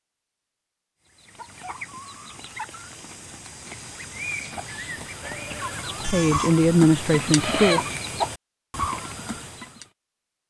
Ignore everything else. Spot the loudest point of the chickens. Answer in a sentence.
The loudest moment of the chickens is at 8 seconds.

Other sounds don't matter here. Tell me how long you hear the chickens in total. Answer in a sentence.
You can hear the chickens for 9 seconds altogether.